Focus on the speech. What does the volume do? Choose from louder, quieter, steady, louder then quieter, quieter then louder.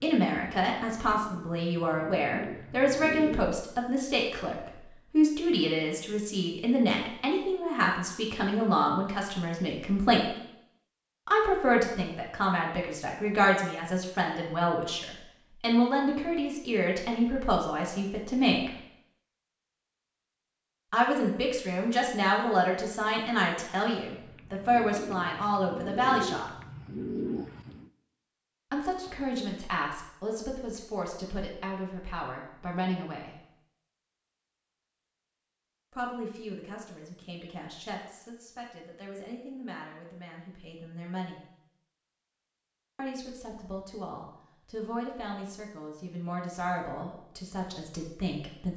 quieter.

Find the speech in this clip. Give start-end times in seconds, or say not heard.
0.0-10.3, 11.2-18.7, 20.9-26.5, 28.7-33.4, 35.9-41.4, 43.0-48.7.